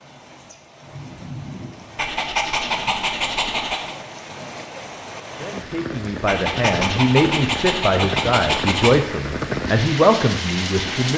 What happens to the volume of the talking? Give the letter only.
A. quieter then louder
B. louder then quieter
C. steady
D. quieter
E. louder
E.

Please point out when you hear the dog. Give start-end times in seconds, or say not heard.
1.9-4.0, 6.2-9.0.